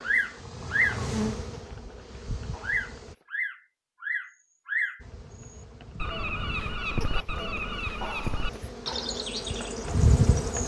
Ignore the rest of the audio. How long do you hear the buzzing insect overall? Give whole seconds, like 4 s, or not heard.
9 s.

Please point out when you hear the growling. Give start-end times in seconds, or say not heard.
1.5-3.2, 7.0-8.8.